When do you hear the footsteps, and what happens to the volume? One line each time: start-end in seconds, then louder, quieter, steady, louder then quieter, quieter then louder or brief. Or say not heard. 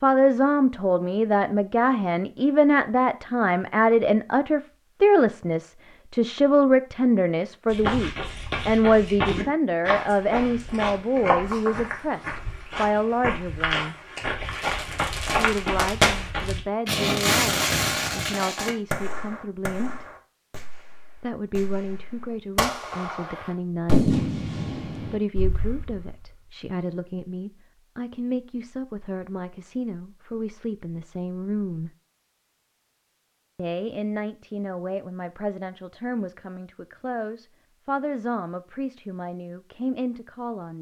7.7-16.6 steady.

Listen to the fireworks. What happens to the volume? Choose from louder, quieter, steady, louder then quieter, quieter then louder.
quieter then louder.